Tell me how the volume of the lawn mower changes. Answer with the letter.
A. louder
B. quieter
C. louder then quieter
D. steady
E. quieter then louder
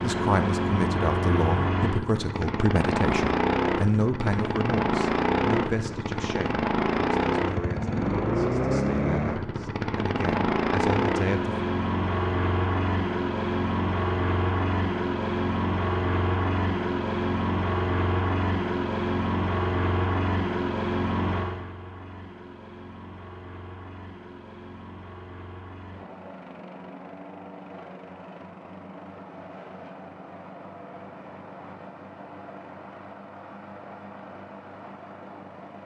B.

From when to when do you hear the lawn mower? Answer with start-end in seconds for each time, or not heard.
0.0-35.8.